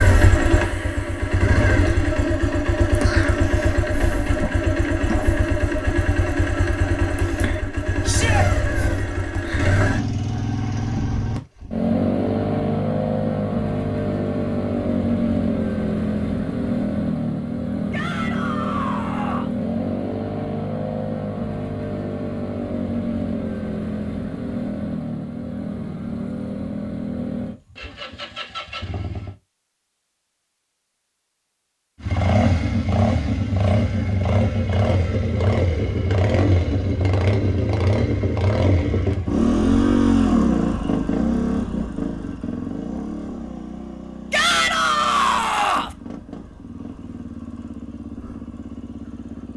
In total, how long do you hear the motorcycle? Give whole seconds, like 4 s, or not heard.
47 s.